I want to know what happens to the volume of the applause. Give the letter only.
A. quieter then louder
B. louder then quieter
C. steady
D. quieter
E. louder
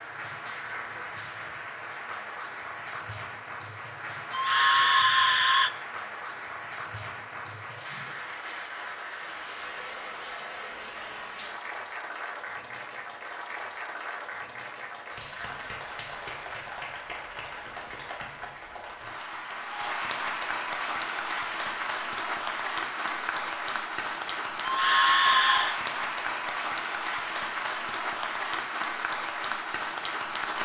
E.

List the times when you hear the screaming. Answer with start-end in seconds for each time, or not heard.
4.3-5.7, 24.6-25.8.